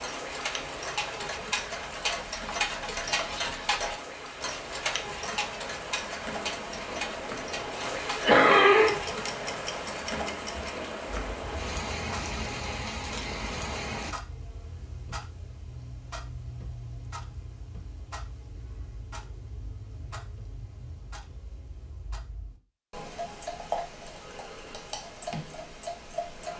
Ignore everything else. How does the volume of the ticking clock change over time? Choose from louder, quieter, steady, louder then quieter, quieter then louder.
quieter then louder.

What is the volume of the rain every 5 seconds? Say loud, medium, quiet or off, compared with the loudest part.
medium, loud, loud, off, off, off.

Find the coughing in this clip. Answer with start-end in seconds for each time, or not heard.
7.5-8.9.